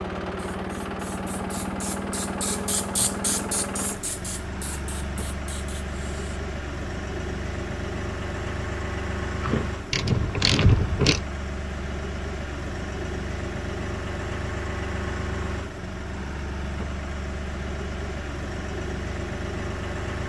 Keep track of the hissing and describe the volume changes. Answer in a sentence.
The loudness of the hissing goes up, then down.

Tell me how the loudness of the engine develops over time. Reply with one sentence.
The volume of the engine stays about the same.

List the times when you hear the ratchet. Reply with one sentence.
The ratchet can be heard from 9.4 to 11.2 s.